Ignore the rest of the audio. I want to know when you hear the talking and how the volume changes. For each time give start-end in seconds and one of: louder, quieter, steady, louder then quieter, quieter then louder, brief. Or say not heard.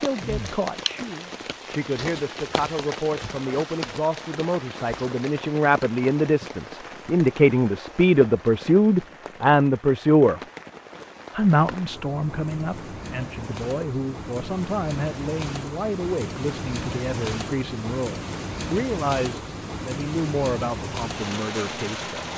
0.0-10.4 louder
11.3-22.3 steady.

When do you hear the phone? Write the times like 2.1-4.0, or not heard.
not heard.